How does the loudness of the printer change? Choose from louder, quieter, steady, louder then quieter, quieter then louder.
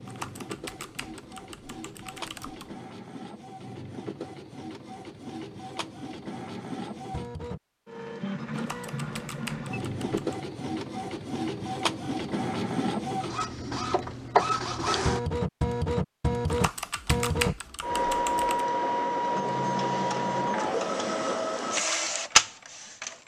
louder.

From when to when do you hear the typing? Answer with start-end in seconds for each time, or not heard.
0.1-2.8, 8.6-10.3, 16.4-18.6.